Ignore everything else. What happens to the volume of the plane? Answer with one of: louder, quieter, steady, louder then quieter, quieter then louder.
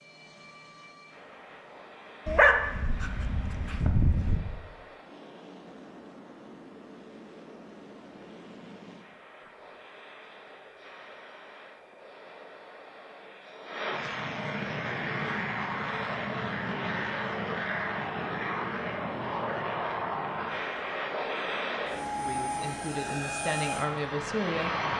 louder.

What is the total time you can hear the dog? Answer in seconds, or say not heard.
2 s.